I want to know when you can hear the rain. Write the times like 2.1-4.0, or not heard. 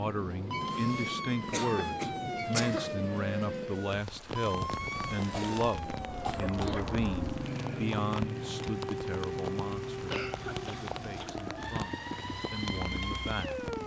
0.0-13.8.